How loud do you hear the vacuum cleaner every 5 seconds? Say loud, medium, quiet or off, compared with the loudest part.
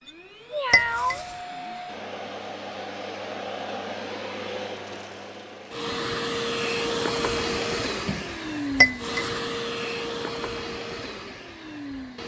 medium, loud, medium.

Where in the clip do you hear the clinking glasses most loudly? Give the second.
9 s.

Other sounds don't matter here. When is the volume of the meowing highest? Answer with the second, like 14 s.
1 s.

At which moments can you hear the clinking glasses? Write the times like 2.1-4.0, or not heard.
0.7-1.2, 8.8-9.4.